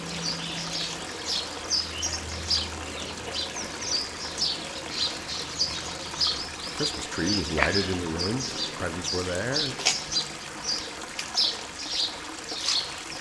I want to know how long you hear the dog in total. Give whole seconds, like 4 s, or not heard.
not heard.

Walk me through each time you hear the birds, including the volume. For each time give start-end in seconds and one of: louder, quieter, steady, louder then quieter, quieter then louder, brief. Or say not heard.
0.0-13.1 steady.